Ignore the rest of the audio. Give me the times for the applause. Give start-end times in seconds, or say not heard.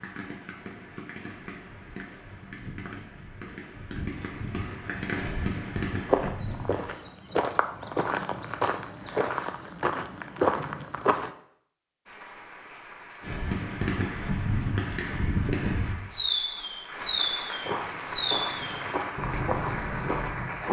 12.1-20.6.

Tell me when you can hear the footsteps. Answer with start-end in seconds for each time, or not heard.
6.0-11.3, 17.6-20.6.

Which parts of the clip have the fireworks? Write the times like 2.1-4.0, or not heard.
0.0-7.0, 13.2-20.6.